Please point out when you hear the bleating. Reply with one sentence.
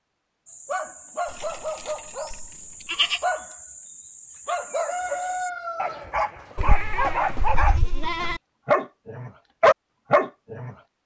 You can hear the bleating from 1.2 to 3.2 s and from 6.5 to 8.4 s.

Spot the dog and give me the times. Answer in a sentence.
The dog can be heard from 0.5 to 10.8 s.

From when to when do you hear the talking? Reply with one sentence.
The talking can't be heard in this clip.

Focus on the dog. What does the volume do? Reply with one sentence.
The loudness of the dog goes up.